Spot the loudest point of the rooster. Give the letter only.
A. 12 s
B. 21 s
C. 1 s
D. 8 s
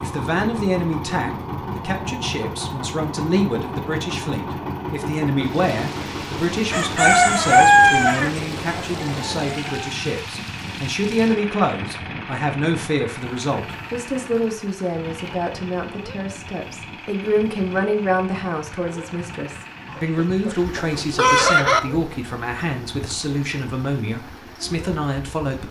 D.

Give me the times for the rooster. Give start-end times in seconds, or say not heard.
6.7-9.9, 19.9-21.8.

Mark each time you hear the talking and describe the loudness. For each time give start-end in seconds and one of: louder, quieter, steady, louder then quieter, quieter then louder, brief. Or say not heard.
0.0-25.6 steady.